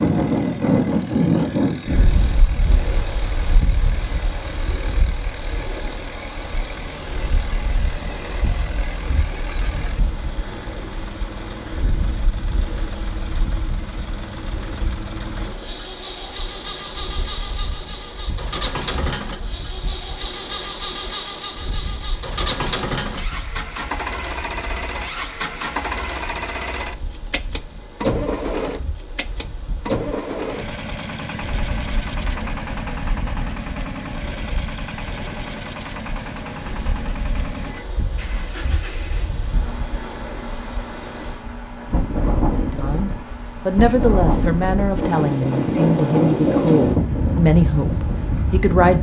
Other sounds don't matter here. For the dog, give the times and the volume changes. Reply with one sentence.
The dog can't be heard in this clip.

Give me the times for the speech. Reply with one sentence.
You can hear the speech from 42.5 to 48.9 s.